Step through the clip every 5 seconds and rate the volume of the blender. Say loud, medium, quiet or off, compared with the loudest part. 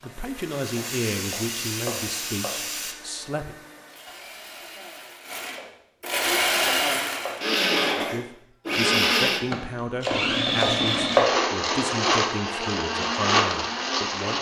quiet, loud, loud.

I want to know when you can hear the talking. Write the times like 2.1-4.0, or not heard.
0.0-3.5, 8.0-14.3.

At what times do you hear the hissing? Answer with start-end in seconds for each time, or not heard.
0.2-3.0.